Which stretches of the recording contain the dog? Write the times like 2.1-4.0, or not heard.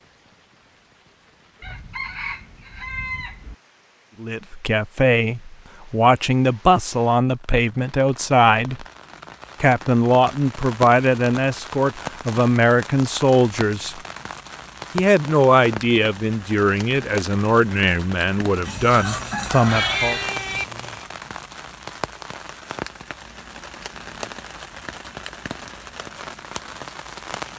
not heard.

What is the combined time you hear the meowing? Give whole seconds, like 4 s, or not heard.
2 s.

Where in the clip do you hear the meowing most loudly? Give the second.
20 s.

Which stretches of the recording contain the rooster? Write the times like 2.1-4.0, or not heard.
1.6-3.5, 18.9-20.4.